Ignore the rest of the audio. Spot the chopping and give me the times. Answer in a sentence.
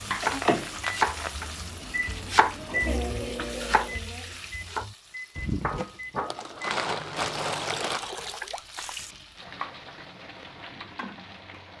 The chopping can be heard from 0.1 to 6.2 s.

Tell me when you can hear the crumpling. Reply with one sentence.
You can hear the crumpling from 0.2 to 1.4 s and from 6.2 to 8.2 s.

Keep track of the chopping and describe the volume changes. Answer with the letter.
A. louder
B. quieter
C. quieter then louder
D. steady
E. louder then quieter
C.